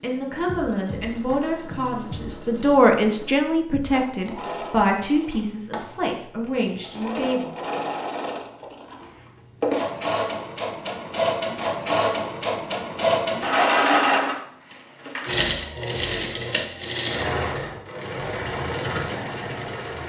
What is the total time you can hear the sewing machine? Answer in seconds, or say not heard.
20 s.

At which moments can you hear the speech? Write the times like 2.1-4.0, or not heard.
0.0-7.5.